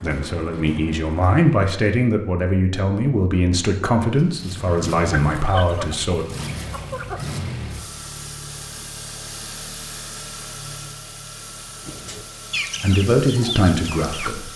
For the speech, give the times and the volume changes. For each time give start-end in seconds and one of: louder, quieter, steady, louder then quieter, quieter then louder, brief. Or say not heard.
0.0-6.2 steady
12.8-14.5 brief.